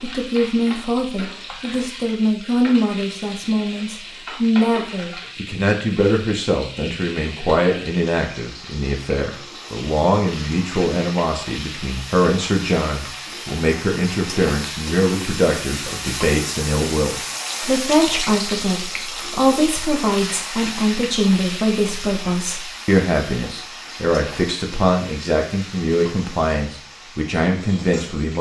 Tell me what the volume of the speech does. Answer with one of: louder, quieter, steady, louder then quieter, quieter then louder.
steady.